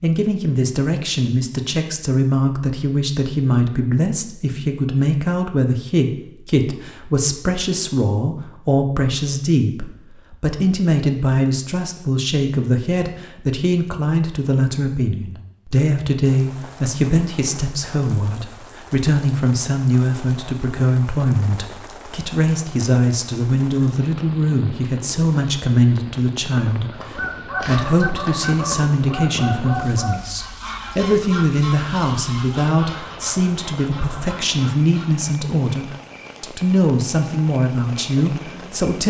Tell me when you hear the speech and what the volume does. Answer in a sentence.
You can hear the speech from 0.0 to 39.0 s, at a steady volume.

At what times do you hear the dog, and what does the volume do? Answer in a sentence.
The dog can't be heard in this clip.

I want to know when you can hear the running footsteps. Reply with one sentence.
The running footsteps can't be heard in this clip.